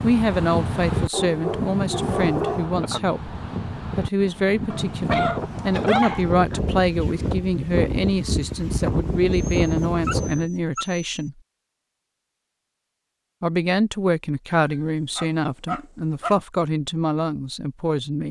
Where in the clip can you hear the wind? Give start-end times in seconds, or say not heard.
0.0-10.5.